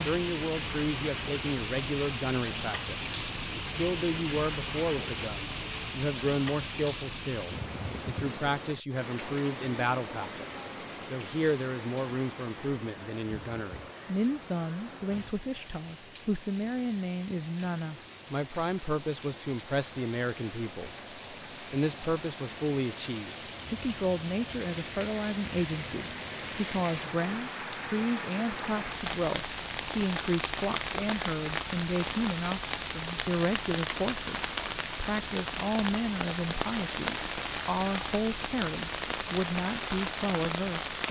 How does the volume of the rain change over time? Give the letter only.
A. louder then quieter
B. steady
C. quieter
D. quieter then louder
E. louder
D.